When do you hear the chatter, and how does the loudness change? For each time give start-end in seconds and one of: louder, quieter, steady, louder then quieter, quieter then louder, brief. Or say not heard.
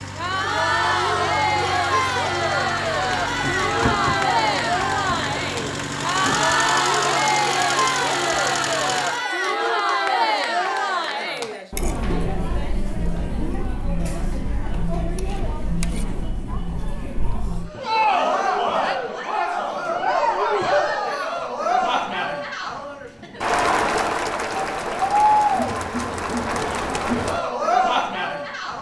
0.0-28.7 quieter then louder.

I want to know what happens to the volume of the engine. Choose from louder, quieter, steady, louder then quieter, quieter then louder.
louder.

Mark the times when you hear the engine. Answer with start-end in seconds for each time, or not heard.
0.0-9.2.